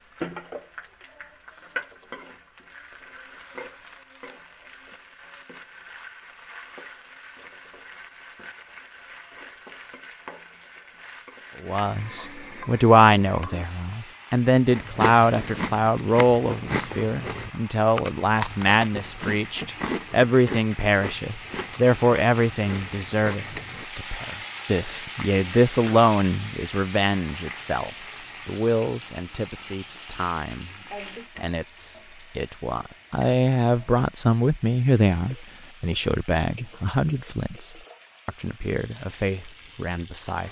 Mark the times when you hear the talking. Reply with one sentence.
You can hear the talking from 11.6 to 30.8 s and from 31.4 to 40.4 s.